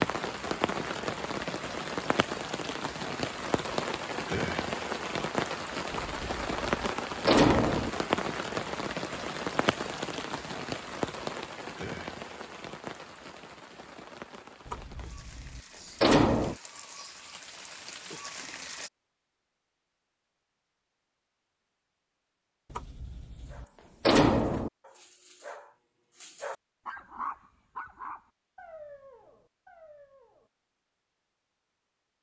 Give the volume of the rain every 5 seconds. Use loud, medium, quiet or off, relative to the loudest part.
loud, loud, medium, quiet, off, off, off.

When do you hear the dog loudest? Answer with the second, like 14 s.
27 s.